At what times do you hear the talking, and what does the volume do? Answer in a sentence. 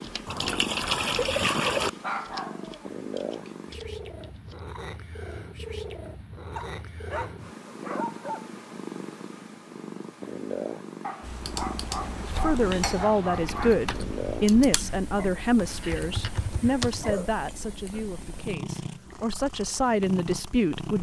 You can hear the talking from 12.2 to 20.9 s, getting quieter then louder.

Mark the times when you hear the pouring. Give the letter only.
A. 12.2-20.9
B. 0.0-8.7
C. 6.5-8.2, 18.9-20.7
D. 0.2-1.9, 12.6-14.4
D.